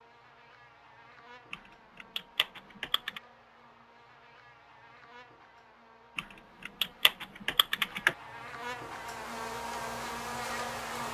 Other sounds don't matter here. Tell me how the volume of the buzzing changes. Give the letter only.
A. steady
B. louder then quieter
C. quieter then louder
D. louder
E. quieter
D.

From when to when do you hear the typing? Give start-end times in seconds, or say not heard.
1.5-3.2, 6.2-8.2.